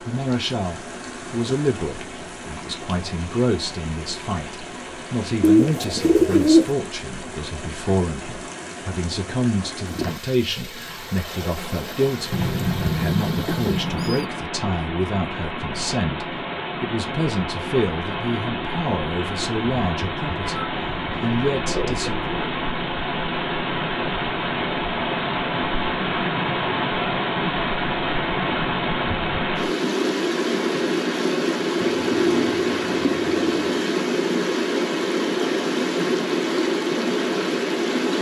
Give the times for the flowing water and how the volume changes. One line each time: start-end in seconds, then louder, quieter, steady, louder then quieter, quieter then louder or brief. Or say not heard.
0.0-38.1 louder.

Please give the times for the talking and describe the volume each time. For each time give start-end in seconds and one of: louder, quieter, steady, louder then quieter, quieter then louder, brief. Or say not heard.
0.1-22.5 steady.